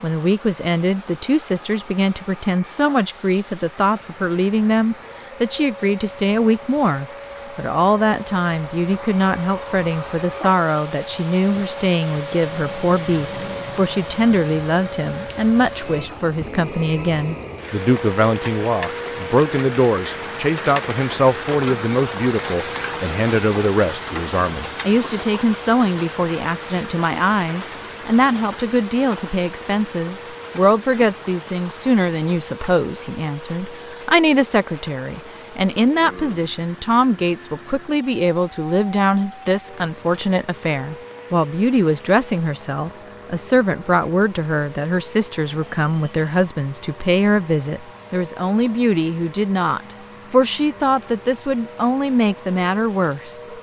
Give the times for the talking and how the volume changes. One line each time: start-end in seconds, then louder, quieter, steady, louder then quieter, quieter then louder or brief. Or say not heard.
0.0-53.4 steady.